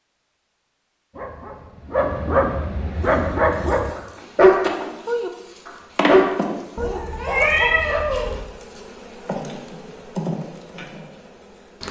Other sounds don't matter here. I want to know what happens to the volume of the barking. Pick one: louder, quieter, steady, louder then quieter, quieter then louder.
louder then quieter.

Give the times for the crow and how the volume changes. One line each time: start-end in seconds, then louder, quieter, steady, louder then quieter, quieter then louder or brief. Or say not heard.
not heard.